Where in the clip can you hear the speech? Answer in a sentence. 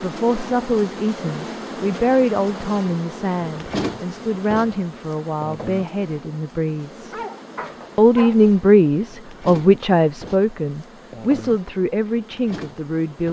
You can hear the speech from 0.0 to 7.2 s and from 8.0 to 13.2 s.